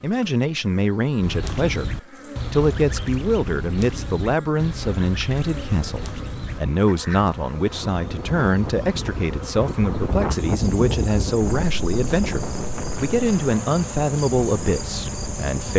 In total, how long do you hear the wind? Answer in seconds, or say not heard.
8 s.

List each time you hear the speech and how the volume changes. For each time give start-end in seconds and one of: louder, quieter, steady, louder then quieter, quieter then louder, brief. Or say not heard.
0.0-15.7 steady.